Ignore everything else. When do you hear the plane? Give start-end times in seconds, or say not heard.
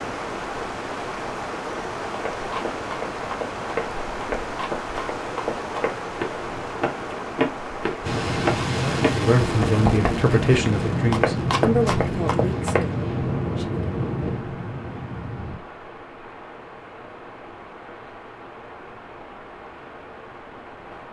8.0-15.6.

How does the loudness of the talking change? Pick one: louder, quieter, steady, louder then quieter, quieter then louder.
quieter.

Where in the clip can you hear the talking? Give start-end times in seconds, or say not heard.
8.7-13.8.